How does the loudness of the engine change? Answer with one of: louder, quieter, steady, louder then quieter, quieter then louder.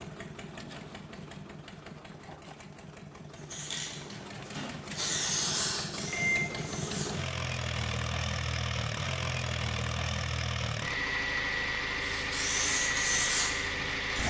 louder.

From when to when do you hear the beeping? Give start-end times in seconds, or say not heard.
6.0-6.7.